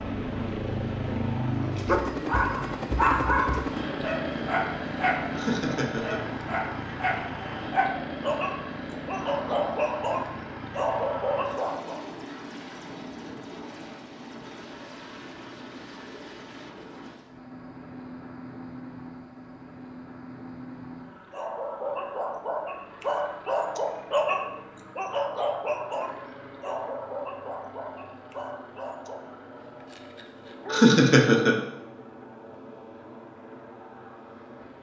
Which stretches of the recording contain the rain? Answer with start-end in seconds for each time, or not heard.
not heard.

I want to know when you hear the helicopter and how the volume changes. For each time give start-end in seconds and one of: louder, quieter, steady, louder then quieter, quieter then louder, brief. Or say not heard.
0.0-34.7 quieter.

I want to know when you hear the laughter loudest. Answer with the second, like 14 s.
31 s.